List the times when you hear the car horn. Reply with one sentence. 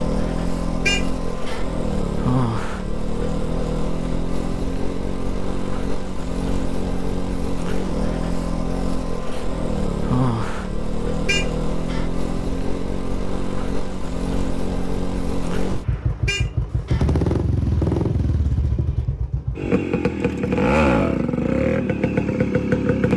You can hear the car horn from 0.8 to 1.6 s, from 11.2 to 12.1 s and from 16.2 to 17.1 s.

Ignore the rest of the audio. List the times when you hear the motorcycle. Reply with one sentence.
The motorcycle can be heard from 0.0 to 23.1 s.